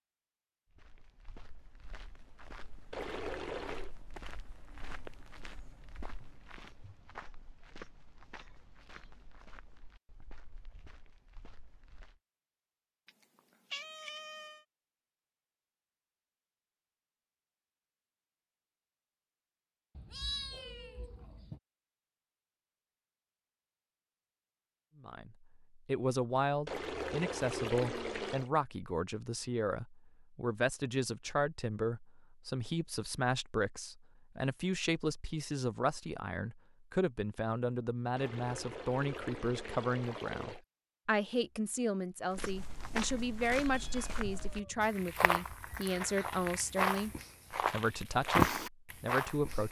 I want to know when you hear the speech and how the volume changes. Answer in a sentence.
You can hear the speech from 25.0 to 49.6 s, at a steady volume.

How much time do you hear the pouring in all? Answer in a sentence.
The pouring can be heard for 5 seconds in total.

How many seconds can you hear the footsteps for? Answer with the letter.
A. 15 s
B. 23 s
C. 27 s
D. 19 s
D.